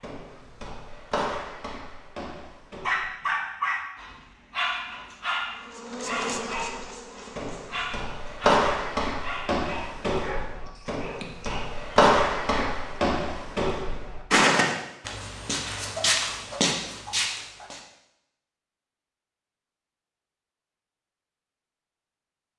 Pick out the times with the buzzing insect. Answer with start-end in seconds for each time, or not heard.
5.5-8.1.